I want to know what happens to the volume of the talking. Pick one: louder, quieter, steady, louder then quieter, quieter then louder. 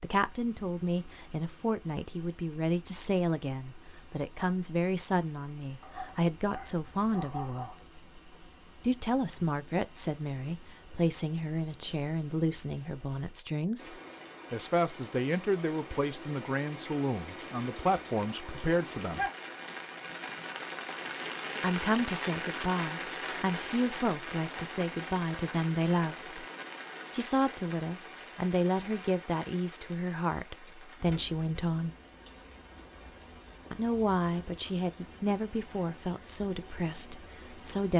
steady.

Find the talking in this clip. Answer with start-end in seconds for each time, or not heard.
0.0-7.8, 8.8-19.2, 21.6-26.4, 27.1-31.9, 33.7-37.9.